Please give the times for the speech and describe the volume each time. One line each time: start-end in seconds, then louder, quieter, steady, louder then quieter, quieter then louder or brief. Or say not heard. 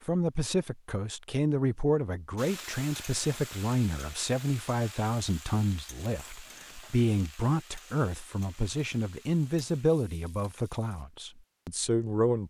0.1-12.4 steady.